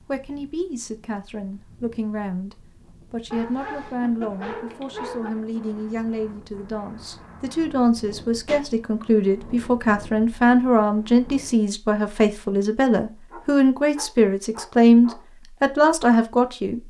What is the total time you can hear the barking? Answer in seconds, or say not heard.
4 s.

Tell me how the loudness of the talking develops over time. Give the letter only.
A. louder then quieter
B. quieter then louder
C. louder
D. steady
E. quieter
C.